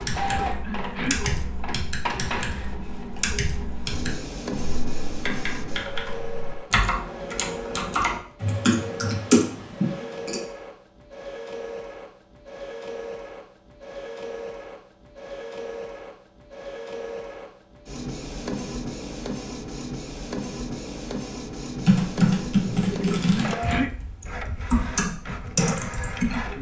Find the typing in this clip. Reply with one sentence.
The typing can be heard from 0.0 to 10.4 s and from 21.8 to 26.5 s.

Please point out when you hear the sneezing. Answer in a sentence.
You can hear the sneezing from 0.5 to 1.2 s and from 23.1 to 23.9 s.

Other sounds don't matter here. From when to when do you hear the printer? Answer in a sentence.
You can hear the printer from 0.0 to 26.5 s.